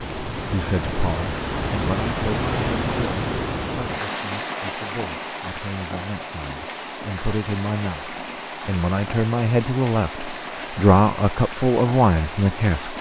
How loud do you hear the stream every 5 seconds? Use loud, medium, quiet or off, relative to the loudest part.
loud, medium, medium.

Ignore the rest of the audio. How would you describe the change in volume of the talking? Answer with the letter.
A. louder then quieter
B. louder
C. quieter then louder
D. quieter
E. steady
C.